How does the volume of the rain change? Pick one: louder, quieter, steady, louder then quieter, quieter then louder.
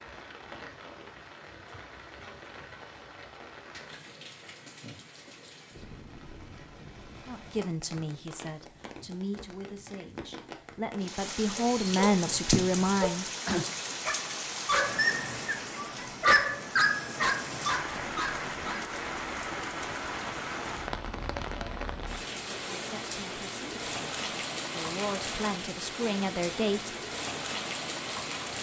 louder.